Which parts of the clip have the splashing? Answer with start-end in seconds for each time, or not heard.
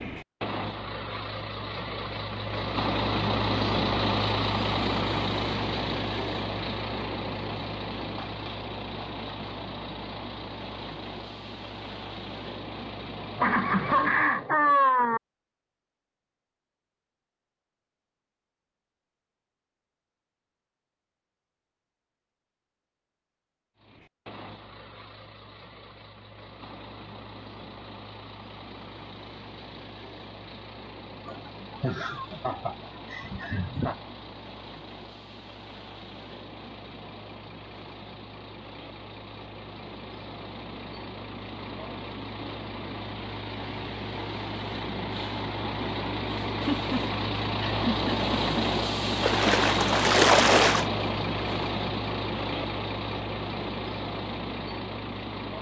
49.2-50.9.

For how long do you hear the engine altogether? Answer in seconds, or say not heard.
46 s.